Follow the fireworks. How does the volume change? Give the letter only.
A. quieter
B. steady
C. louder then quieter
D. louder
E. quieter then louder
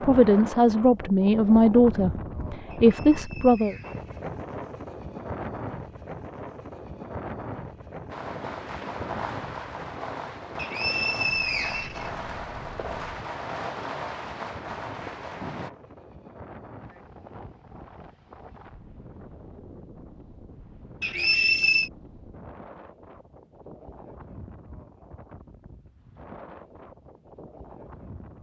B.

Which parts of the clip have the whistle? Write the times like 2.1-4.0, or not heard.
2.7-4.2, 10.6-12.1, 21.0-21.9.